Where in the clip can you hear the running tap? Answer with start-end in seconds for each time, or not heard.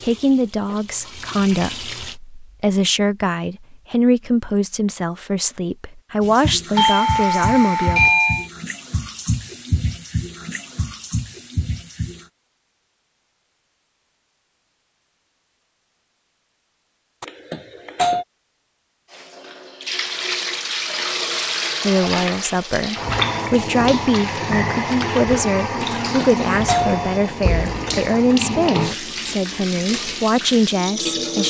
0.0-2.1, 6.2-12.3, 19.1-31.4.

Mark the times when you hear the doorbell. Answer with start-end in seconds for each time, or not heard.
6.8-8.5, 17.2-18.2, 25.9-27.9.